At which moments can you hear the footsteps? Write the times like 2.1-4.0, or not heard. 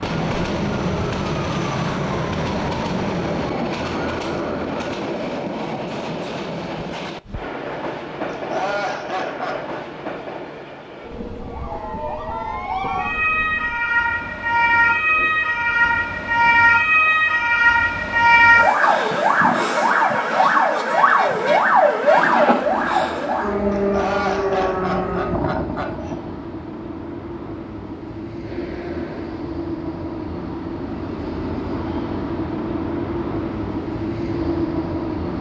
not heard.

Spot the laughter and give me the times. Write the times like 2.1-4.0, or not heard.
8.3-9.8, 23.7-26.1.